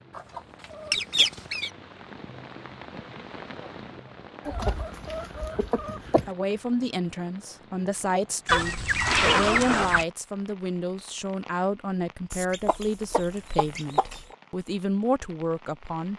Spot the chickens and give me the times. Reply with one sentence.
You can hear the chickens from 0.1 to 1.7 s, from 4.5 to 6.3 s, from 8.4 to 10.1 s and from 12.3 to 14.3 s.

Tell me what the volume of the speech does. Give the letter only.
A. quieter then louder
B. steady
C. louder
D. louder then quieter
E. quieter
B.